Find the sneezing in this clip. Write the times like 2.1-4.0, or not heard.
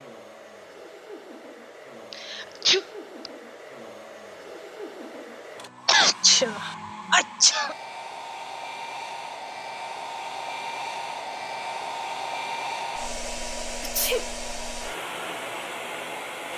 2.1-3.3, 5.8-7.8, 13.8-14.2.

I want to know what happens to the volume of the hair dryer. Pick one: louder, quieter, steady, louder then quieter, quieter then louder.
louder.